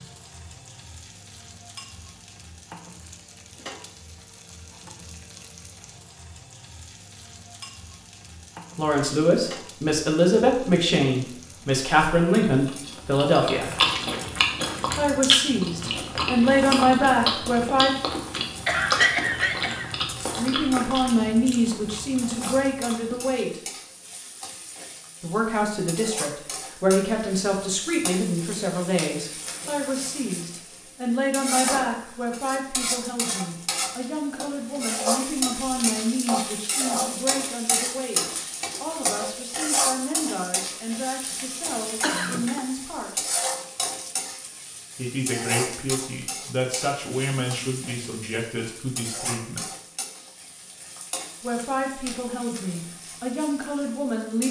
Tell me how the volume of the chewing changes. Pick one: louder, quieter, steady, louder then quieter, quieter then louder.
quieter.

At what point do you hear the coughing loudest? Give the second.
19 s.